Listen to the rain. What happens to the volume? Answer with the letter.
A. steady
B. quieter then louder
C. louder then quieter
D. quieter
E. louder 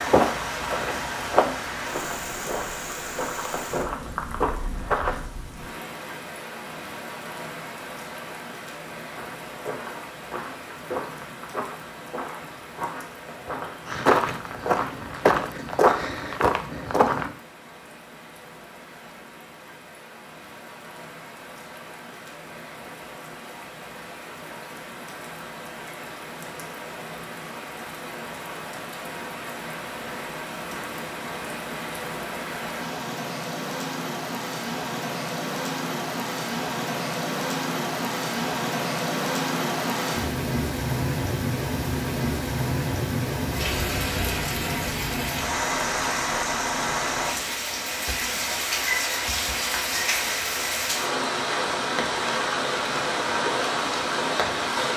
B.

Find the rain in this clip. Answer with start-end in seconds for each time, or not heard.
0.0-54.9.